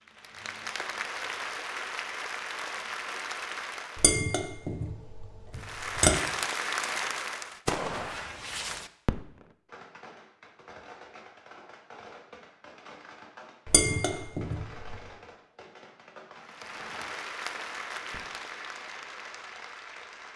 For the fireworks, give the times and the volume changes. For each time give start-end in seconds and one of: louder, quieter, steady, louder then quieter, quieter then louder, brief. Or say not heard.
7.5-18.3 quieter.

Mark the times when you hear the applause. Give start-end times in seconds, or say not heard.
0.0-4.2, 5.5-7.6, 16.4-20.3.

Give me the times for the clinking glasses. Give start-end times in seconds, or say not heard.
4.0-6.2, 13.7-15.0.